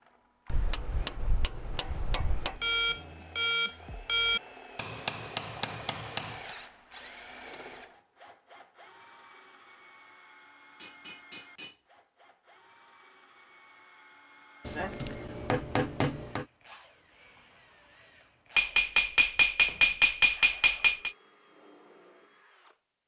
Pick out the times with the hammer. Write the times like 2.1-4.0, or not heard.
0.5-2.6, 4.8-6.5, 10.8-11.8, 14.7-16.4, 18.6-21.1.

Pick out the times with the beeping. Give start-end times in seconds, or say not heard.
2.6-4.4.